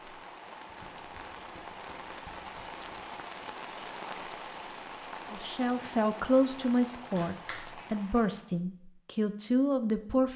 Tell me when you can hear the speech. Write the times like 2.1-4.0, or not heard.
5.3-10.3.